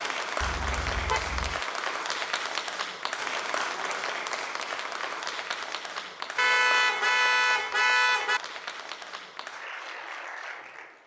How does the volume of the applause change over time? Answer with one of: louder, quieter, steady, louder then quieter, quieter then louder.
quieter.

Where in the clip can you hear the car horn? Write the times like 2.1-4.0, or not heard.
0.4-1.6, 6.3-8.4.